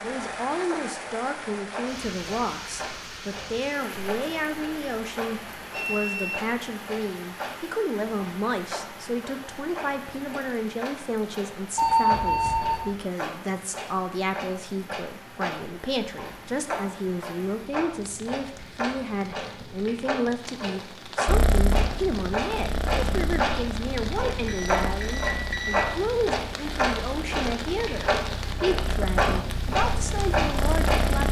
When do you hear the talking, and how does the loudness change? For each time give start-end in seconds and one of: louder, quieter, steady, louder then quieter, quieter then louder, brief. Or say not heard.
0.0-31.2 steady.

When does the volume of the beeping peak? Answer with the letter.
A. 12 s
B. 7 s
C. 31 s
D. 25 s
A.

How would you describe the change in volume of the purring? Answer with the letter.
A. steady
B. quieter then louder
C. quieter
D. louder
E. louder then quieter
B.